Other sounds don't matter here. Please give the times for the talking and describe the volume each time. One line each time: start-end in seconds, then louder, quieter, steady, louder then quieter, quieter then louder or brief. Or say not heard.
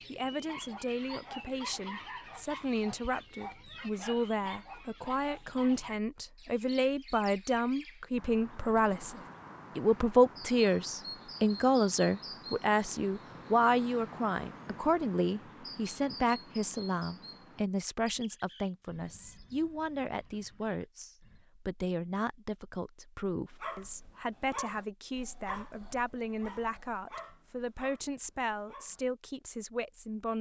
0.1-30.3 louder then quieter.